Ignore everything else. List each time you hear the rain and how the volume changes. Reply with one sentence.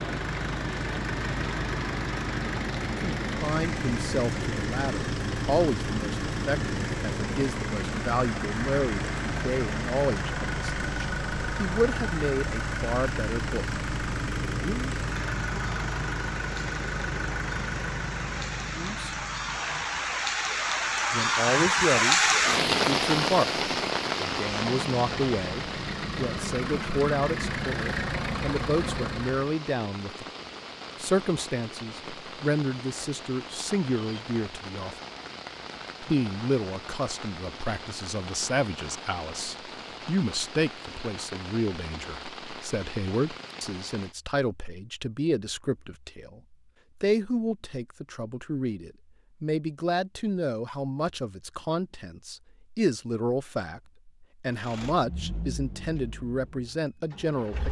You can hear the rain from 0.0 to 44.1 s, getting louder then quieter.